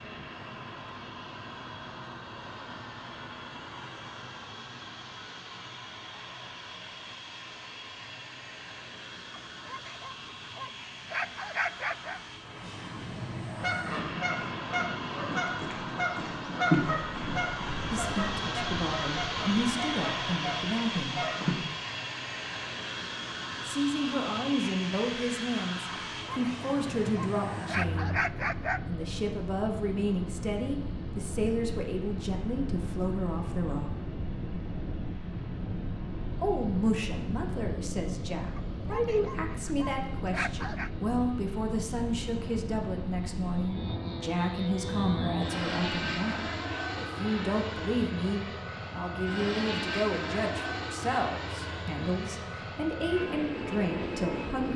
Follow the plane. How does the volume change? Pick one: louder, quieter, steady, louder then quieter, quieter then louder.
louder.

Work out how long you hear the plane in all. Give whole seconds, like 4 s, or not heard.
55 s.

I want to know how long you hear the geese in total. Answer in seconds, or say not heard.
8 s.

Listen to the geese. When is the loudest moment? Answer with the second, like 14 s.
17 s.